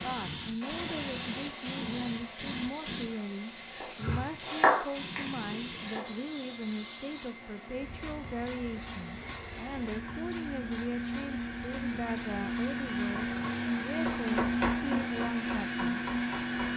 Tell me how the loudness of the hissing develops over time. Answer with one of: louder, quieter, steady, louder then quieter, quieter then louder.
quieter.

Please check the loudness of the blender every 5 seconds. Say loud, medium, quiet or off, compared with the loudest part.
quiet, quiet, loud, loud.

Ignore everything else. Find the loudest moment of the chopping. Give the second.
5 s.